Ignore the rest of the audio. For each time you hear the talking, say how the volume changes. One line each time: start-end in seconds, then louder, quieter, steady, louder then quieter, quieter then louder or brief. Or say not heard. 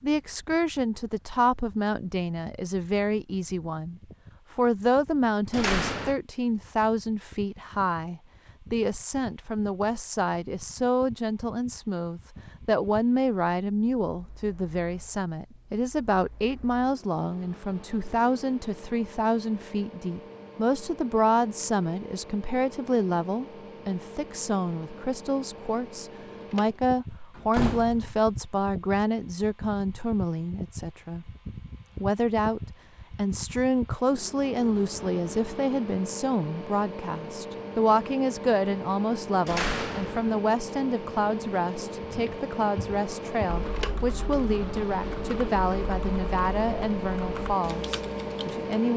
0.0-31.2 steady
32.0-48.9 steady.